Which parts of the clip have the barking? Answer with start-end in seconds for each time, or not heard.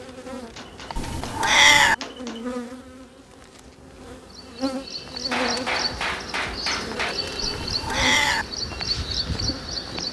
not heard.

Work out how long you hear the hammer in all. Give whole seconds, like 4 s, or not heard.
4 s.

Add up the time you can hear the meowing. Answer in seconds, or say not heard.
2 s.